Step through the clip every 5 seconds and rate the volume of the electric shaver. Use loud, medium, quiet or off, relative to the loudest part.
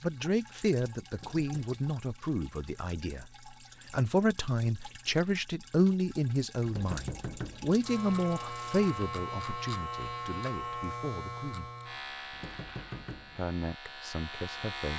off, loud, loud.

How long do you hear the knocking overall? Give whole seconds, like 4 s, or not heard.
3 s.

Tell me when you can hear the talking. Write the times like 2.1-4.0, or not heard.
0.0-3.2, 3.9-11.7, 13.3-14.9.